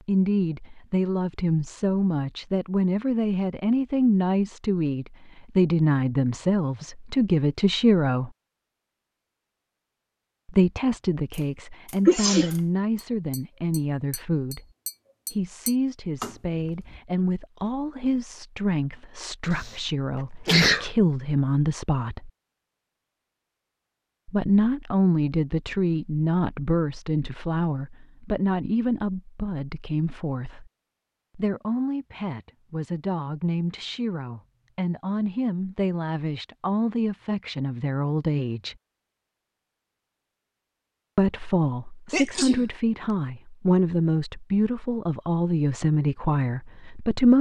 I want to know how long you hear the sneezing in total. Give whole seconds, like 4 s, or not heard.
2 s.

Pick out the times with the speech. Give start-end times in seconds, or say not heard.
0.1-8.3, 10.4-14.7, 15.3-22.3, 24.2-30.7, 31.4-38.8, 41.1-47.3.